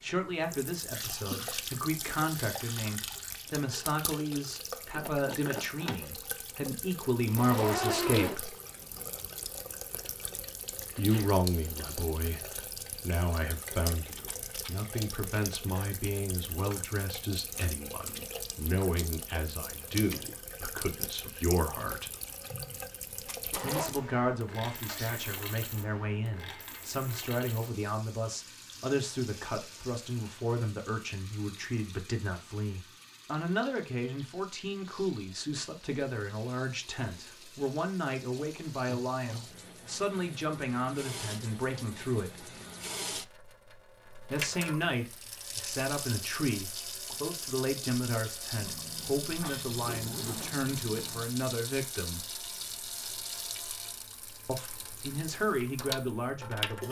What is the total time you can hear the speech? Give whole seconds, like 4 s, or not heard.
49 s.